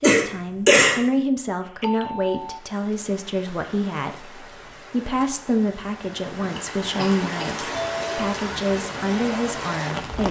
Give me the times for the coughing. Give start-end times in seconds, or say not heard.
0.0-1.0, 6.5-7.5.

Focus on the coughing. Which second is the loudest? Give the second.
1 s.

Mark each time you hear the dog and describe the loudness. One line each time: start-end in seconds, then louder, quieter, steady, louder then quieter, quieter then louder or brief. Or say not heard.
not heard.